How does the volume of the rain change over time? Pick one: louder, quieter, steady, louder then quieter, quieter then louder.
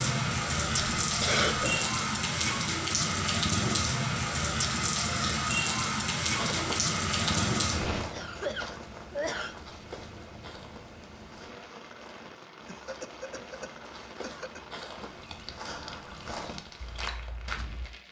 quieter.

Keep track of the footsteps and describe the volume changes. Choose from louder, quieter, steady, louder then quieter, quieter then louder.
quieter then louder.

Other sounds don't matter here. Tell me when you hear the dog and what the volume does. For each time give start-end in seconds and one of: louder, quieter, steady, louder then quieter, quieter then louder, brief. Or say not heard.
not heard.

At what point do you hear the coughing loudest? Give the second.
1 s.